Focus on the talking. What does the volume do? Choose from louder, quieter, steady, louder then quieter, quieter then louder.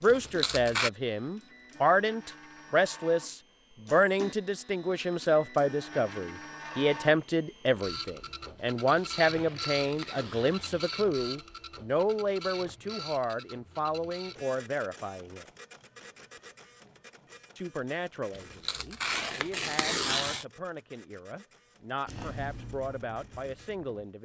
quieter.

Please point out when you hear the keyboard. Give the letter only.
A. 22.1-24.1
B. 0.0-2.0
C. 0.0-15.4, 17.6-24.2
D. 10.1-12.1
A.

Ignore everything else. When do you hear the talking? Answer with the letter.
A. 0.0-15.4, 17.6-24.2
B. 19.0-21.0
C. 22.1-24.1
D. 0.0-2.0
A.